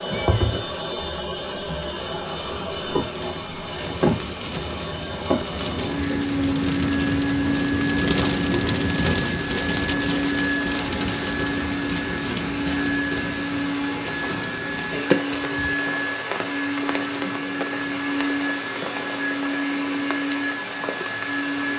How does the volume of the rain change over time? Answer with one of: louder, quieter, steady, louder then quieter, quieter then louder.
louder then quieter.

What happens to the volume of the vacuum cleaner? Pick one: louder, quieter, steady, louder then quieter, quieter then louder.
steady.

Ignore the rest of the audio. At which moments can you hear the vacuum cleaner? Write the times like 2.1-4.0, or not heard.
0.0-21.7.